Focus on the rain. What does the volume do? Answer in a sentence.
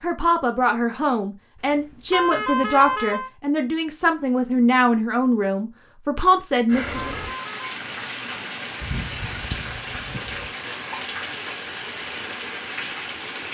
The loudness of the rain stays about the same.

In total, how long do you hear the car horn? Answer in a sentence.
The car horn can be heard for 2 seconds in total.